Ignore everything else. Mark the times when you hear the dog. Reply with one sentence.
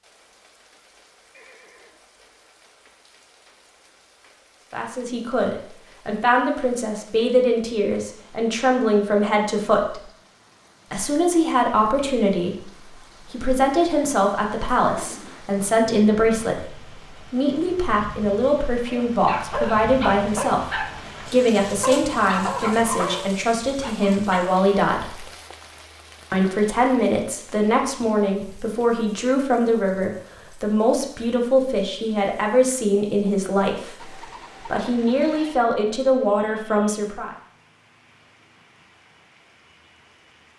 The dog can be heard from 18.9 to 24.6 s.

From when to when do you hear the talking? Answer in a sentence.
The talking can be heard from 4.7 to 10.1 s, from 10.9 to 25.2 s and from 26.3 to 37.4 s.